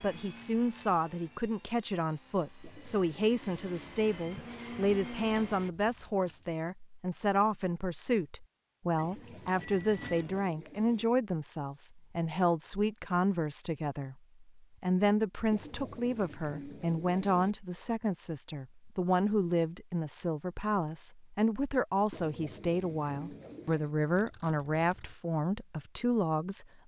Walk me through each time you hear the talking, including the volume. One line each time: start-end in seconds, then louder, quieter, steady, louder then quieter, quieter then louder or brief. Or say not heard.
0.0-26.6 steady.